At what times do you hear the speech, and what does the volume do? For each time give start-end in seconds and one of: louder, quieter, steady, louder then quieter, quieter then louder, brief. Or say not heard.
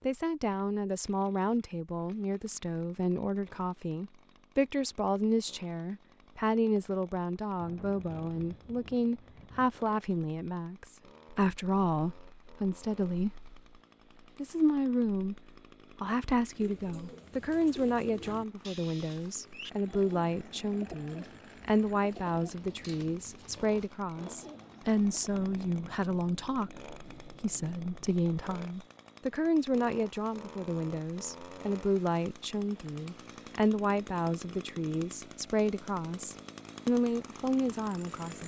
0.0-13.6 steady
14.3-15.4 brief
16.0-38.4 steady.